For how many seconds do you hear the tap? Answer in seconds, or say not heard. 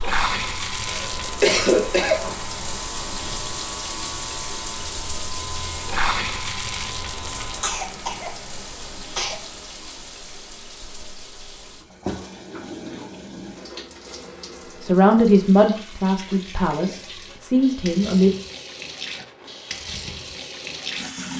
21 s.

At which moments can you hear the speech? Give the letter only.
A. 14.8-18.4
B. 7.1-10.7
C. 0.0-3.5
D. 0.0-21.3
A.